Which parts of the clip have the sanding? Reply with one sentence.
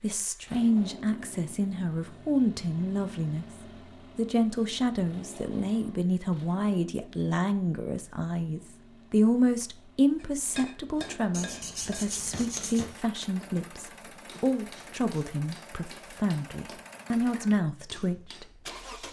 The sanding can be heard from 11.3 to 12.8 s.